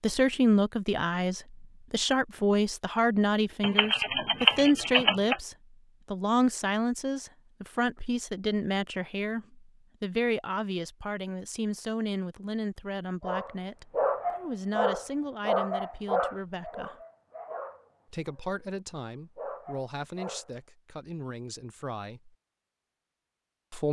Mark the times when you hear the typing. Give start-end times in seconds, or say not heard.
3.6-5.4.